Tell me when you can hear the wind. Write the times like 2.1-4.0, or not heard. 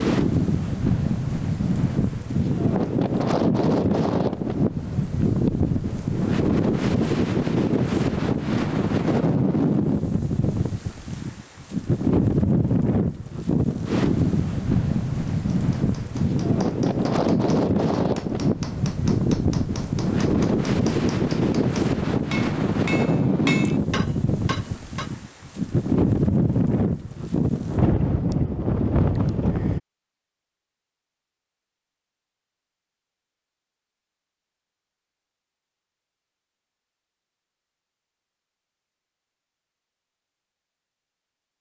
0.0-29.8.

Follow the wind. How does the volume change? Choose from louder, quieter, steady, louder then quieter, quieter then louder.
steady.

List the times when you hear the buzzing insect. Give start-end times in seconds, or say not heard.
not heard.